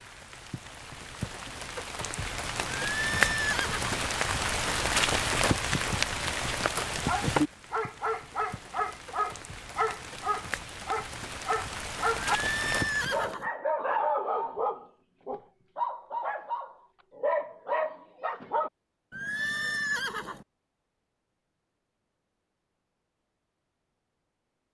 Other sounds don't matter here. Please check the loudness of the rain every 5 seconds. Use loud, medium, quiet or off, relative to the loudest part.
loud, loud, medium, off, off.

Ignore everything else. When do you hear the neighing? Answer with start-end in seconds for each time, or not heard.
2.8-4.0, 12.2-13.5, 19.1-20.4.